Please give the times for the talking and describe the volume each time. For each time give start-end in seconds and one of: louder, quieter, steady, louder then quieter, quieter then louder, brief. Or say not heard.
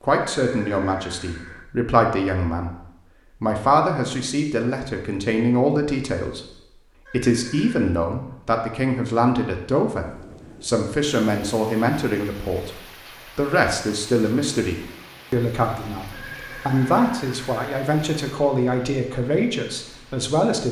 0.0-2.7 brief
3.4-20.6 steady.